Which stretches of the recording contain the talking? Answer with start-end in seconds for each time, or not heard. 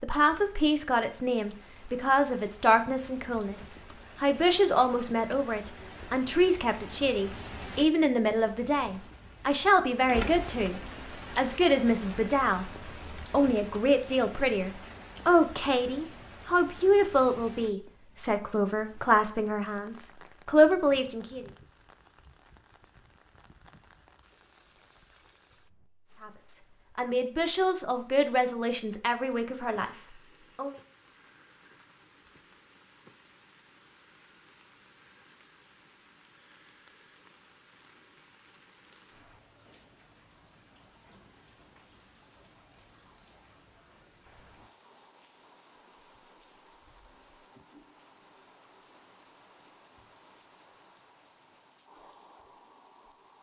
0.0-21.4, 26.2-30.8.